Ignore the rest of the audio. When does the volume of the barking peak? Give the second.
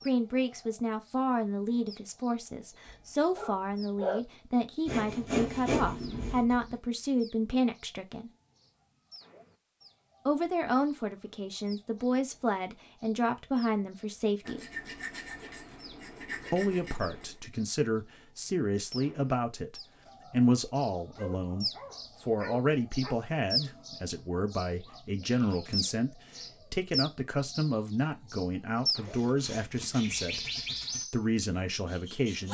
4 s.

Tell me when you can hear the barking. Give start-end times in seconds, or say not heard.
2.9-4.2, 21.1-23.1.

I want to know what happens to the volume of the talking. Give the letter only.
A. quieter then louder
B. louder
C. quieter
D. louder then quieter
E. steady
E.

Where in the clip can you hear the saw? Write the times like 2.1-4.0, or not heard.
4.8-6.8, 14.4-17.4, 29.1-31.1.